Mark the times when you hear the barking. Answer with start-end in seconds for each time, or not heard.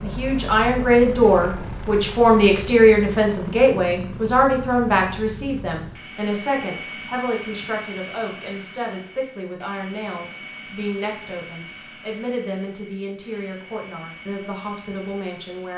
not heard.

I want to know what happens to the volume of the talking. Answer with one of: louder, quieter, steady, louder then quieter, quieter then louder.
quieter.